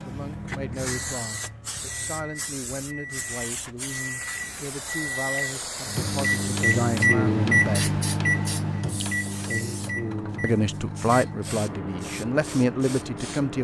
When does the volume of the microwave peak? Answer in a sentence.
The loudest moment of the microwave is at 7 seconds.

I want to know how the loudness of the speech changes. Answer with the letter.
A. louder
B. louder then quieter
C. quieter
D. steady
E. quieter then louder
A.